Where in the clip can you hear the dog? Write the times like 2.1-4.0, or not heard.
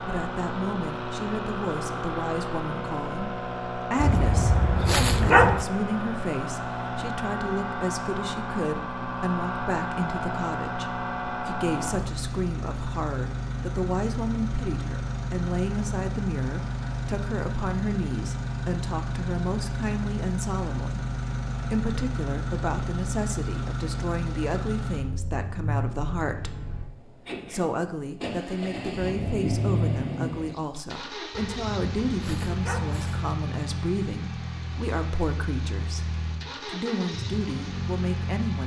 4.0-5.7, 31.3-33.4.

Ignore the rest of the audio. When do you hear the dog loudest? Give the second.
5 s.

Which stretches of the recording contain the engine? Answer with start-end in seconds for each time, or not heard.
0.0-38.6.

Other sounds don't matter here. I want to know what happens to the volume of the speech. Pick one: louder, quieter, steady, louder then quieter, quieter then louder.
steady.